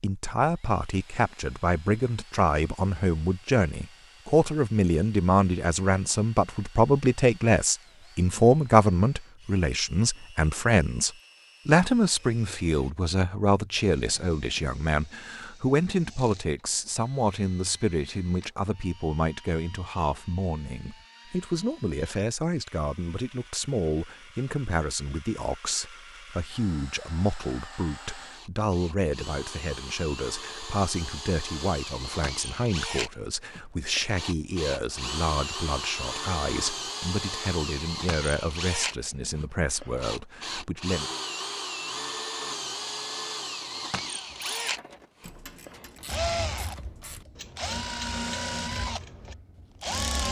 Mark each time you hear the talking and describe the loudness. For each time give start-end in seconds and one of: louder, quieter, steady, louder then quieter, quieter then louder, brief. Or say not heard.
0.0-41.1 quieter.